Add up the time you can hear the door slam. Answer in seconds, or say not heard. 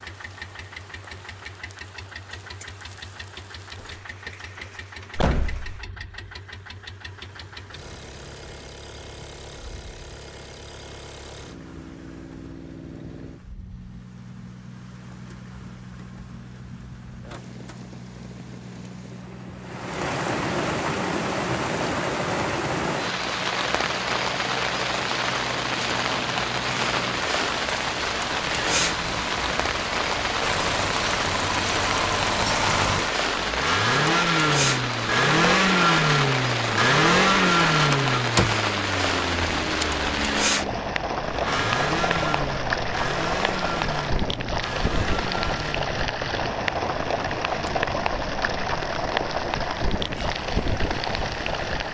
3 s.